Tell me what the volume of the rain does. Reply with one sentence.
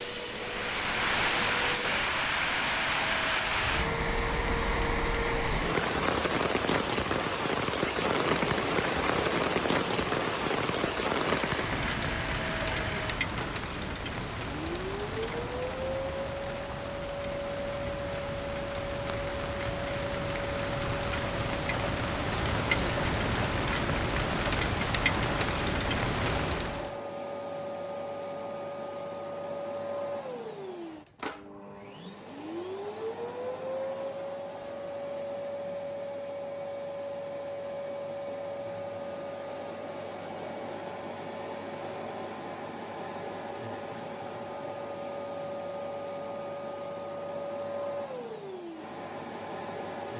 The loudness of the rain goes down, then up.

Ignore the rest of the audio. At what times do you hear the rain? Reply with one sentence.
You can hear the rain from 0.0 to 26.9 s.